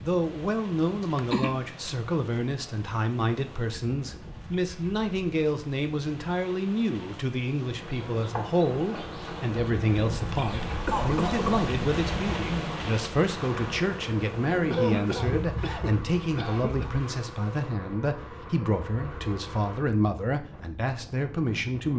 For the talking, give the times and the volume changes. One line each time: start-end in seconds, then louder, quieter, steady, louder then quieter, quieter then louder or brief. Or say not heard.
0.0-21.9 steady.